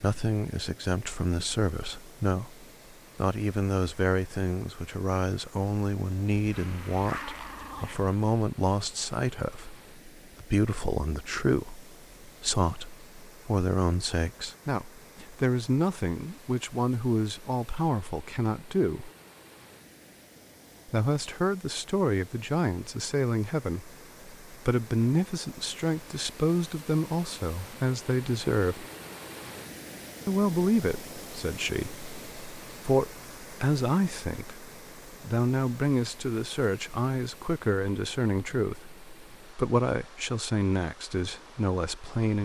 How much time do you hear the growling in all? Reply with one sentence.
You can hear the growling for 2 seconds altogether.